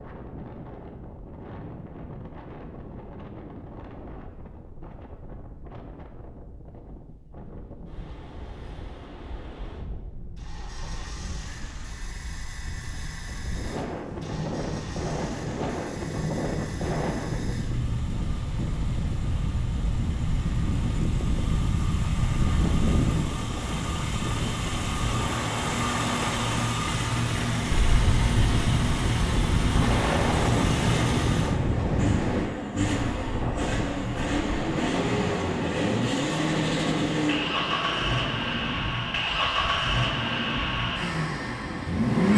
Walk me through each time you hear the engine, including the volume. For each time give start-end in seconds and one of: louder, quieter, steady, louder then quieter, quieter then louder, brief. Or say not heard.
10.3-42.3 louder.